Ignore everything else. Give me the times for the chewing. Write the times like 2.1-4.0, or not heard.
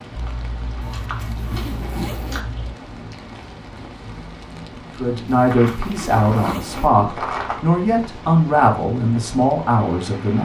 0.1-2.8, 5.5-7.7.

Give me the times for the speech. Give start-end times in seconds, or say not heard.
5.0-10.4.